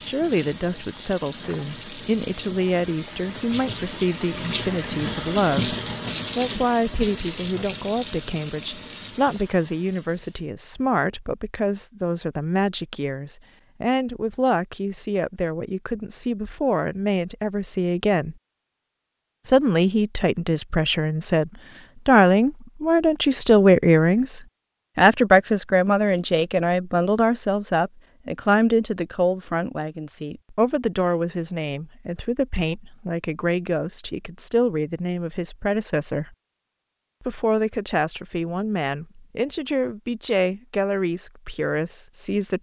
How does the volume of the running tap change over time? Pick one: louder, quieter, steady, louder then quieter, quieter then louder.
louder then quieter.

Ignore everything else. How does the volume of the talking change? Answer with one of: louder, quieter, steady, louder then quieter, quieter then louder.
louder then quieter.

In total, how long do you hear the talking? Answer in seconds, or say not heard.
40 s.